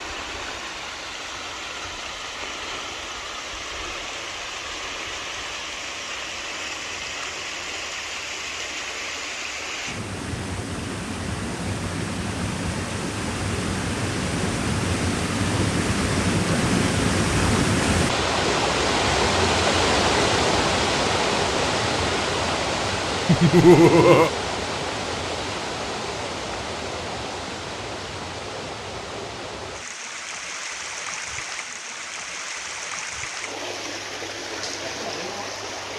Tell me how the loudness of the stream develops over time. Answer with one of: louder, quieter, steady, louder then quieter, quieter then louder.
louder then quieter.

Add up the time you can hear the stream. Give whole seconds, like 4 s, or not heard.
36 s.